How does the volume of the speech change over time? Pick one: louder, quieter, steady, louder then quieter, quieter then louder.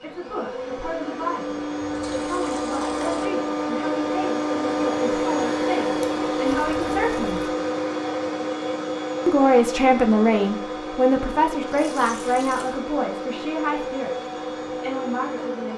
louder then quieter.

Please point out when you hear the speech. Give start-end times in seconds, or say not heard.
0.0-7.4, 9.2-15.7.